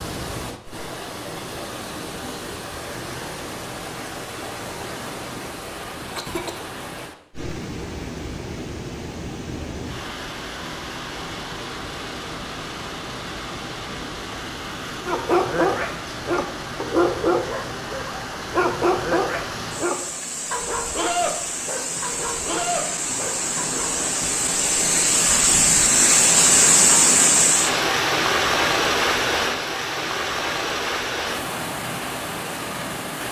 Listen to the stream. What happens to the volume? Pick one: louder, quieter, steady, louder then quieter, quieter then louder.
louder.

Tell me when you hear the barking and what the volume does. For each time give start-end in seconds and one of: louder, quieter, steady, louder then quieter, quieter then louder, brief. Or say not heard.
15.1-24.1 quieter.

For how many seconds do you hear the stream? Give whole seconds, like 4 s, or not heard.
33 s.